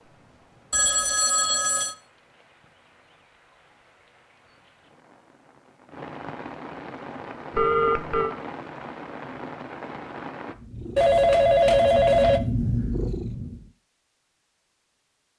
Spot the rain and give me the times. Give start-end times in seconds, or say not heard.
0.0-10.6.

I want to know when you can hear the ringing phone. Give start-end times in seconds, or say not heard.
0.7-1.9, 7.5-8.3, 10.9-12.4.